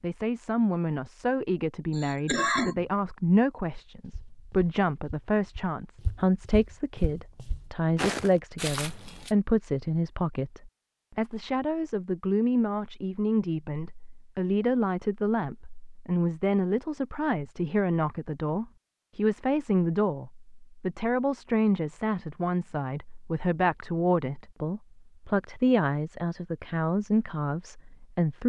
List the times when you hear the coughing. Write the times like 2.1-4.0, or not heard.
1.9-2.9.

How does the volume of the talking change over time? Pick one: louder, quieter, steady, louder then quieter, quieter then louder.
steady.